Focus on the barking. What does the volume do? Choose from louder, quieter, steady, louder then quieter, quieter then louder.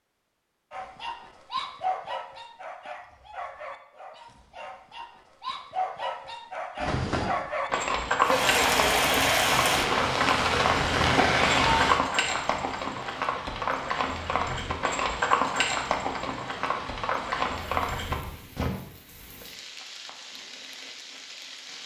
quieter then louder.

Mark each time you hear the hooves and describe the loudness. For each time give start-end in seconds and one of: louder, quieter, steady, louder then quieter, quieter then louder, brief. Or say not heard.
6.8-18.7 steady.